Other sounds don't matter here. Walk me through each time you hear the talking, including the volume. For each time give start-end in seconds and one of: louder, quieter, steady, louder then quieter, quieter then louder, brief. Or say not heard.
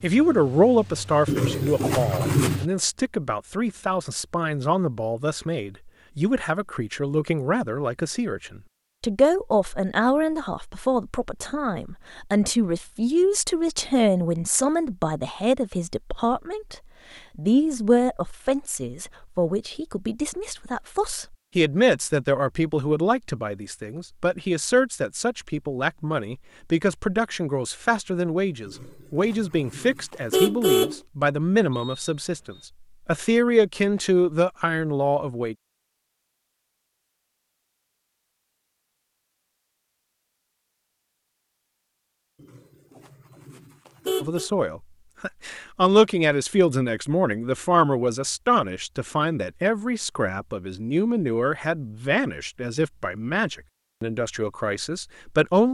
0.0-35.5 steady
44.2-55.6 quieter.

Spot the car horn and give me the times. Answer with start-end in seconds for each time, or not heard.
1.2-2.6, 28.6-31.0, 42.4-44.5.